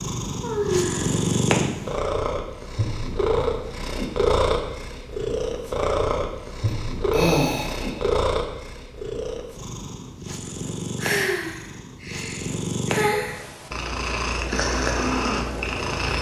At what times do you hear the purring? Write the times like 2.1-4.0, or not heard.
0.0-16.1.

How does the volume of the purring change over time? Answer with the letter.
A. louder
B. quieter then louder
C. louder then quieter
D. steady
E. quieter
B.